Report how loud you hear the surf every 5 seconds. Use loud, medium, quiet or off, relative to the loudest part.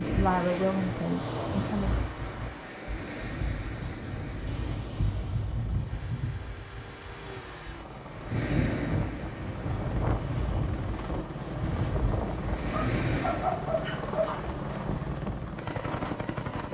loud, loud, loud, off.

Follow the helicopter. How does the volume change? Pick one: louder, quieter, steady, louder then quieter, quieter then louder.
louder.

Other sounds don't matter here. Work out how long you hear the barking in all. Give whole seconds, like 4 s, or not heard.
2 s.